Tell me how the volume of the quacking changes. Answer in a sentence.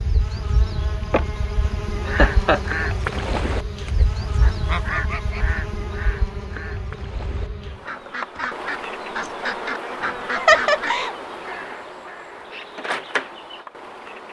The loudness of the quacking goes down, then up.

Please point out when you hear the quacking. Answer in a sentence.
You can hear the quacking from 2.0 to 11.1 s.